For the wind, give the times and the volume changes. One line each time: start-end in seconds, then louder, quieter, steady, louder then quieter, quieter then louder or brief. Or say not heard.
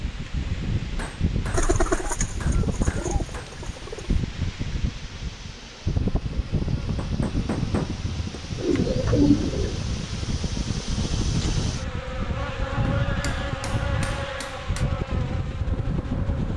0.0-16.5 steady.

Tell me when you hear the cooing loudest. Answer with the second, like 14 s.
9 s.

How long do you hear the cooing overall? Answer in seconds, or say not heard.
4 s.